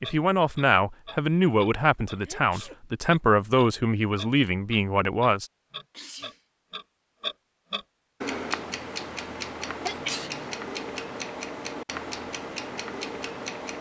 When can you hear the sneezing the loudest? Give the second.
10 s.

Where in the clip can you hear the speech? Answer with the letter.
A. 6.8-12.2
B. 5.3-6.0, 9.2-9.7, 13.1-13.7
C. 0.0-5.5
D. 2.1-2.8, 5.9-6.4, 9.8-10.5
C.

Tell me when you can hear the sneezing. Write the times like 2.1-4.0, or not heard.
2.1-2.8, 5.9-6.4, 9.8-10.5.